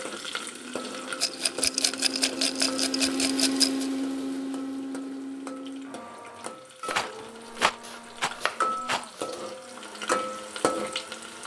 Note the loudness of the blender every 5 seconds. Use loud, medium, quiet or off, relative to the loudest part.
loud, medium, quiet.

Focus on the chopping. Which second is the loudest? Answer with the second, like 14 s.
8 s.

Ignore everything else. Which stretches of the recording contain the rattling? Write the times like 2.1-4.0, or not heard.
1.2-3.9, 6.9-9.1.